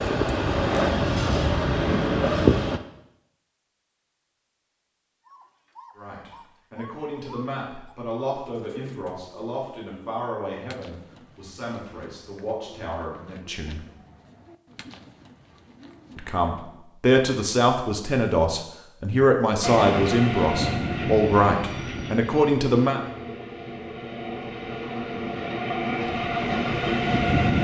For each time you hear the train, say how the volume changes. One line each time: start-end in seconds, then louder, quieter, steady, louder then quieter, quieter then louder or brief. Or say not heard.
0.0-2.8 brief
19.6-27.5 quieter then louder.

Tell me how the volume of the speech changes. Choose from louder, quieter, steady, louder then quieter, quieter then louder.
louder.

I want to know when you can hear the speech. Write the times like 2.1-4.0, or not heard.
6.0-13.8, 16.1-23.0.